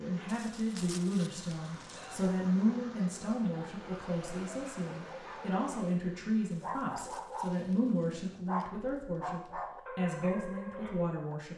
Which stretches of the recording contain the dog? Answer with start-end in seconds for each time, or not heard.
1.9-11.3.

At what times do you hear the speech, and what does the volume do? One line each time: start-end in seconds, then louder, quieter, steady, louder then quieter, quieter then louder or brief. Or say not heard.
0.0-11.5 steady.